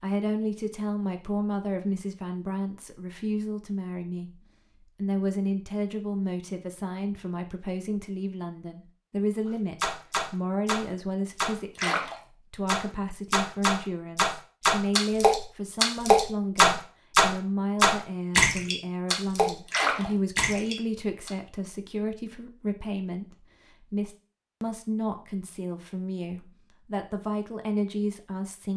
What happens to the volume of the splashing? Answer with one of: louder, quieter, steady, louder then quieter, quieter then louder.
louder then quieter.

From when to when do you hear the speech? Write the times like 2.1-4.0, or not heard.
0.0-28.7.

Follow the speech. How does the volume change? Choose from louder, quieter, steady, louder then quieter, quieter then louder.
steady.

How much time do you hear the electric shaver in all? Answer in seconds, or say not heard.
not heard.